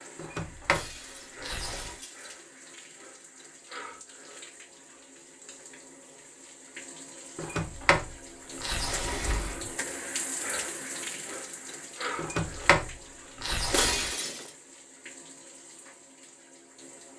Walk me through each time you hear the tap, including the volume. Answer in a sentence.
You can hear the tap from 0.0 to 17.1 s, getting louder then quieter.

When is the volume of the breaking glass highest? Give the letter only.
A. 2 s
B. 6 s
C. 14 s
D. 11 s
C.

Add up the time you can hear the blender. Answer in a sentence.
The blender can't be heard in this clip.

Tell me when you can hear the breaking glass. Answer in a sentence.
The breaking glass can be heard from 0.7 to 2.5 s and from 13.7 to 14.5 s.